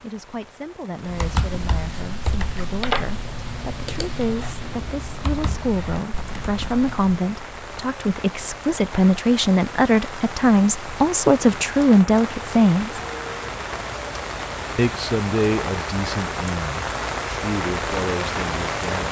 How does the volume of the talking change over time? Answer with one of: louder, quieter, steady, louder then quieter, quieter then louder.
louder then quieter.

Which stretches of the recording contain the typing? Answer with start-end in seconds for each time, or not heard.
1.0-7.2.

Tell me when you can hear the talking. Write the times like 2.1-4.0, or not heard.
0.0-13.0, 14.8-19.0.